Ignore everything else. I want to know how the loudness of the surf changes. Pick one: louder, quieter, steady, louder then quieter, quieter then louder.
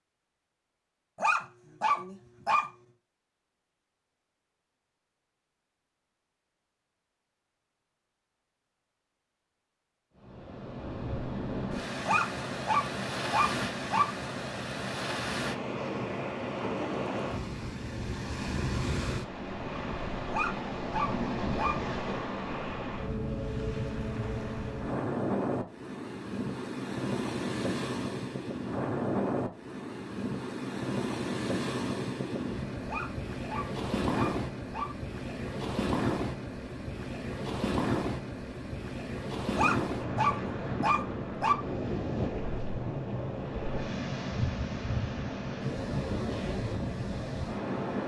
steady.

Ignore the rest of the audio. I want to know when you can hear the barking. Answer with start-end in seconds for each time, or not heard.
1.1-2.6, 12.1-14.1, 20.3-21.8, 32.9-34.9, 39.5-41.5.